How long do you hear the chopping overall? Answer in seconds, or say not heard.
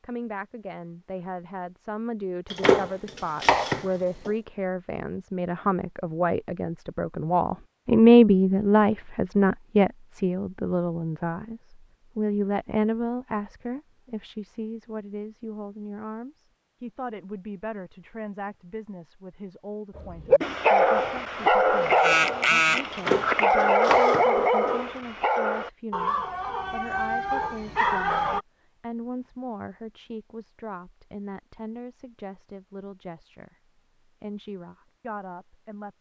4 s.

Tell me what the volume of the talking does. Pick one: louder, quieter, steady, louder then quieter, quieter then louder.
louder then quieter.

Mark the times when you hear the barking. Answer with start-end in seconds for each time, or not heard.
19.9-28.4.